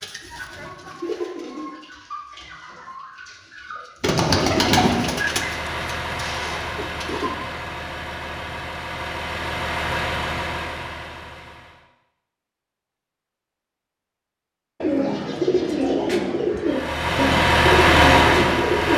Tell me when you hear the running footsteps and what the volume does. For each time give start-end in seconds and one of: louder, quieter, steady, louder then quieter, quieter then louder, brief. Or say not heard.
not heard.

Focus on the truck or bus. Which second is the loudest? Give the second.
18 s.